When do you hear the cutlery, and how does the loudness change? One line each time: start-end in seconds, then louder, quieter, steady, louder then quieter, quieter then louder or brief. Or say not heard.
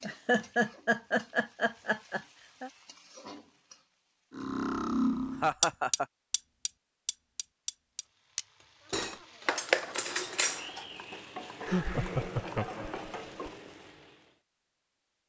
4.3-10.8 quieter then louder.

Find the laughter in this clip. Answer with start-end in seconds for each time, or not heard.
0.0-2.7, 5.4-6.0, 11.7-13.5.